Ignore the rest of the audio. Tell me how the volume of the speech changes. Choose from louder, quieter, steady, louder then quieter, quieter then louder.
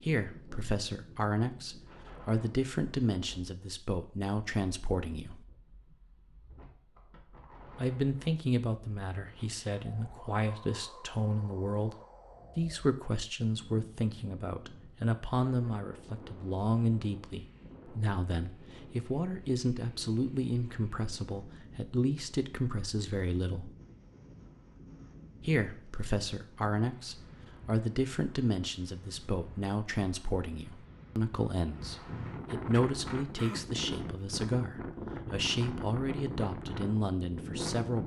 steady.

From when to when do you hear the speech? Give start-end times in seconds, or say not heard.
0.0-5.5, 7.8-11.9, 12.6-23.7, 25.4-38.0.